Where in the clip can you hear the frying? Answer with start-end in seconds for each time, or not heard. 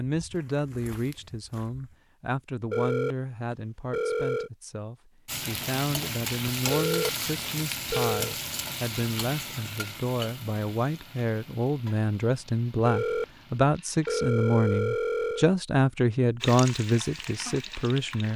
5.2-14.2, 16.4-18.3.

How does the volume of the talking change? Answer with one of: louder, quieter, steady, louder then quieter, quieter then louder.
louder.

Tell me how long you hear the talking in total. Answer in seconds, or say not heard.
18 s.